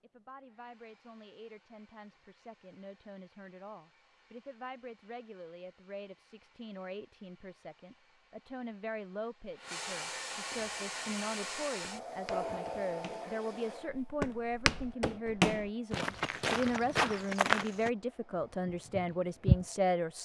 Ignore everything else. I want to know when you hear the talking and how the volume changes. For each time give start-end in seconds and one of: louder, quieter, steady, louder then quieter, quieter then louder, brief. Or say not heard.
0.0-20.1 louder.